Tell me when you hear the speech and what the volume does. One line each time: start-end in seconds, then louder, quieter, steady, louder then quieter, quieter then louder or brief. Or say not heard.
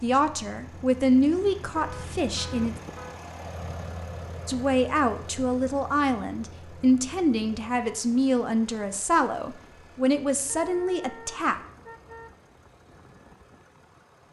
0.0-2.8 brief
4.5-11.6 steady.